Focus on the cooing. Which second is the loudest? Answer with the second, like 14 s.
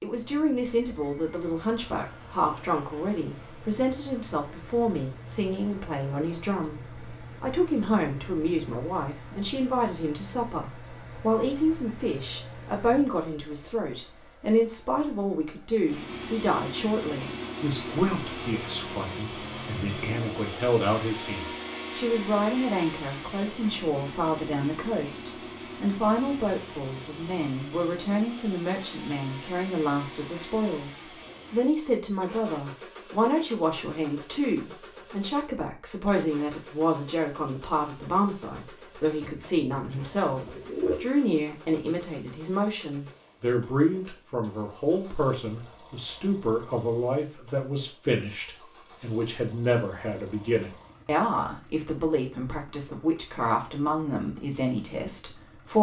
41 s.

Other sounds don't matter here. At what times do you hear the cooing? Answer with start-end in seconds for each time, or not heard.
39.2-41.0.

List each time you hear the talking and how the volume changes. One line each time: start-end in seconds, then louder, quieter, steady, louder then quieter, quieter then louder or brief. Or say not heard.
0.0-55.7 steady.